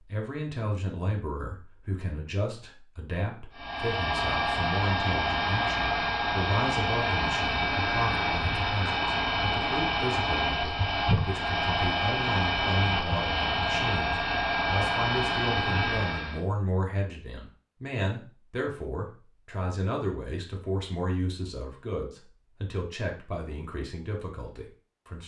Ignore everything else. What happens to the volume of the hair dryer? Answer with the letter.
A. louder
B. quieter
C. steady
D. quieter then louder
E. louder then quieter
C.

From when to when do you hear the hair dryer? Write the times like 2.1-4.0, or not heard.
3.5-16.4.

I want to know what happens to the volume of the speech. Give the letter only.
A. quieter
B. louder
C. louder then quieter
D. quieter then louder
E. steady
E.